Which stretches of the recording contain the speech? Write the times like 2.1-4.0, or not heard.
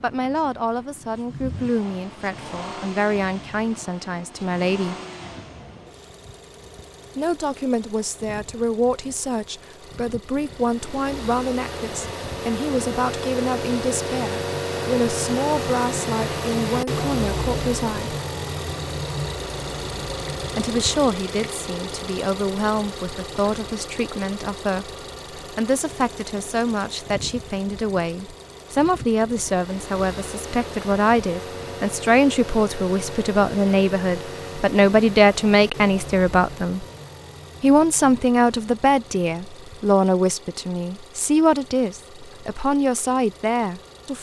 0.0-5.0, 7.2-18.1, 20.6-36.9, 37.6-44.1.